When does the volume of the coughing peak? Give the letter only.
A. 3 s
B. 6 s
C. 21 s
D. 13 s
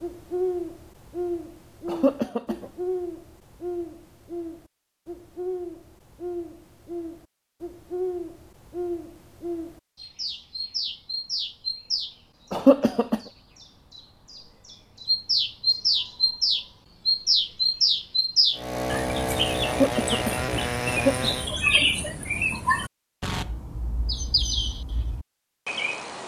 D.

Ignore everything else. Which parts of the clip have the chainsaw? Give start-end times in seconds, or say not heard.
18.5-21.6.